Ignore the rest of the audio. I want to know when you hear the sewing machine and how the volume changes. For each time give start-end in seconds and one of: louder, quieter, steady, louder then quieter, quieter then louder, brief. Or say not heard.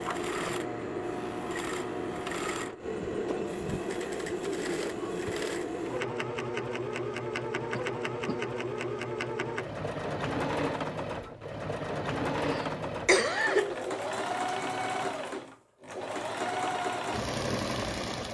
0.0-18.3 steady.